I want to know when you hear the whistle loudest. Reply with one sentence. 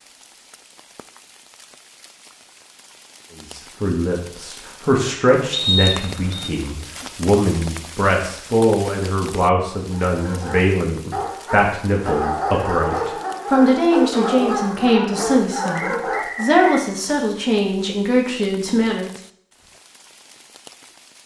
The volume of the whistle peaks at 6 seconds.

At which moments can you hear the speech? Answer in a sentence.
The speech can be heard from 3.5 to 19.1 s.